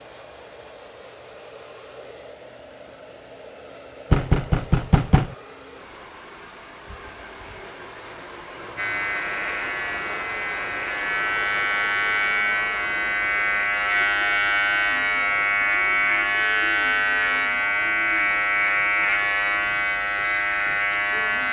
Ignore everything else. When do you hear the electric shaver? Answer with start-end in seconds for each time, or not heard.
8.8-21.4.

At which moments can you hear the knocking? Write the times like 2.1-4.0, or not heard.
4.1-5.3.